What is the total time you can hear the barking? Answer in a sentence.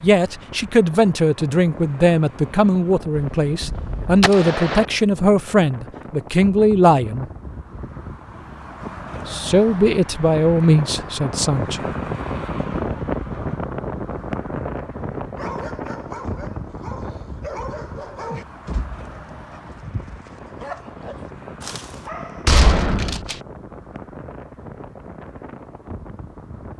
The barking can be heard for 7 seconds in total.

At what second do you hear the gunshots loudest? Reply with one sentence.
The volume of the gunshots peaks at 23 seconds.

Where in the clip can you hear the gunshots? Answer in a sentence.
You can hear the gunshots from 3.1 to 4.8 s and from 22.4 to 23.4 s.